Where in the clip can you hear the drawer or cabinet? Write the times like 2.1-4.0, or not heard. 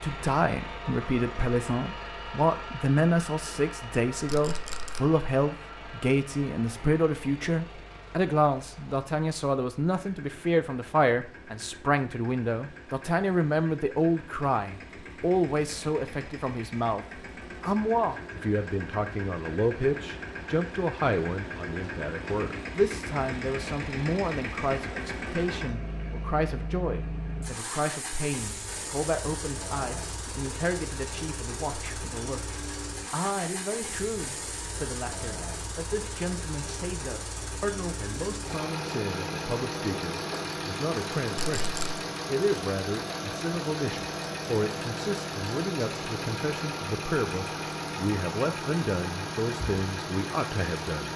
not heard.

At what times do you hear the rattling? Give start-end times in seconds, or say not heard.
4.2-5.0, 41.4-42.0.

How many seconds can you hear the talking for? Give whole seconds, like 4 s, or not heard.
51 s.